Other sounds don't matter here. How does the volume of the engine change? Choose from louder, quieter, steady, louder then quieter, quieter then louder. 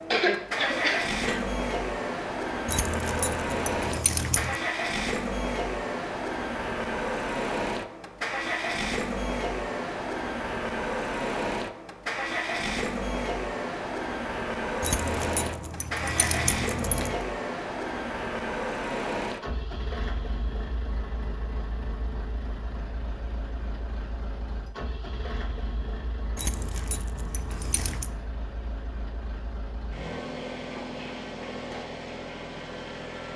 quieter.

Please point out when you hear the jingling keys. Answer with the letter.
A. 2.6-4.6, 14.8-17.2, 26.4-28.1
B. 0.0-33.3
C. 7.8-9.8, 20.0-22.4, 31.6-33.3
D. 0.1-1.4
A.